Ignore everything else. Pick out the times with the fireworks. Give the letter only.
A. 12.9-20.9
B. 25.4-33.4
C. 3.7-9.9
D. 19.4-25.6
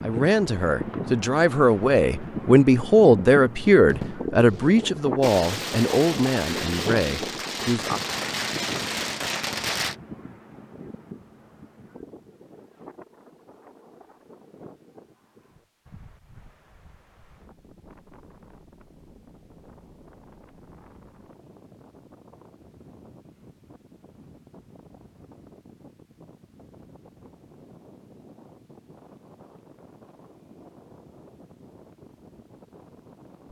C.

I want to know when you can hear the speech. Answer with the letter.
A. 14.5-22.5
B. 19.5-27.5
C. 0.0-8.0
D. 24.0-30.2
C.